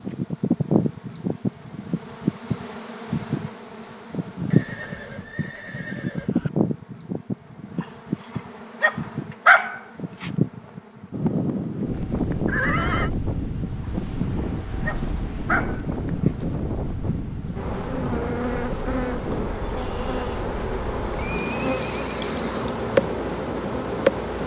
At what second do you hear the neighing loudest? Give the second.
13 s.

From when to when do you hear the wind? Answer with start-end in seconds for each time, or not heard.
11.1-24.4.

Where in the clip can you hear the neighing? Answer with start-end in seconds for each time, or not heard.
4.5-6.5, 12.4-13.1, 21.1-22.8.